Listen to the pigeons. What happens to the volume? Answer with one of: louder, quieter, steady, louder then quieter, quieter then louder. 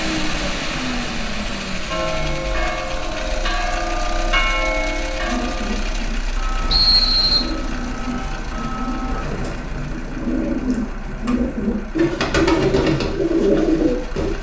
louder.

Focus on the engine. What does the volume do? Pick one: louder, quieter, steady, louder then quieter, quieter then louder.
quieter.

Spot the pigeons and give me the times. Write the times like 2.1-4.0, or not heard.
5.2-14.3.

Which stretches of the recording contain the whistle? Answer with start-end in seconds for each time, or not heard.
6.7-7.5.